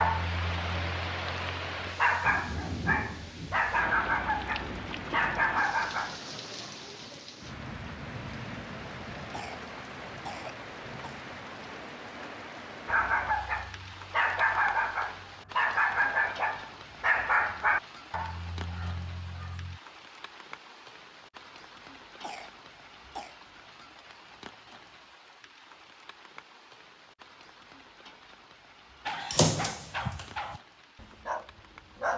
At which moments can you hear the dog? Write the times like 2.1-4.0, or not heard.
0.0-6.2, 12.8-19.8, 29.1-32.1.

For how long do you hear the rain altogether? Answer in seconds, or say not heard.
32 s.